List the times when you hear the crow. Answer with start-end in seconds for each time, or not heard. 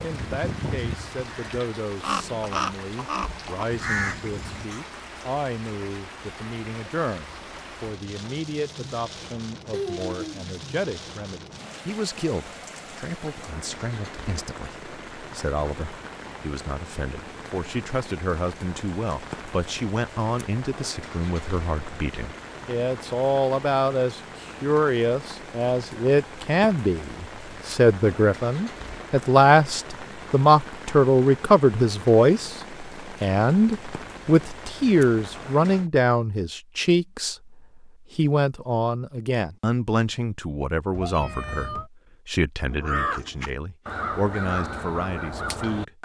0.0-4.8, 42.6-46.0.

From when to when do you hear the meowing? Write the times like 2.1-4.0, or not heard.
9.7-10.4, 40.9-41.9.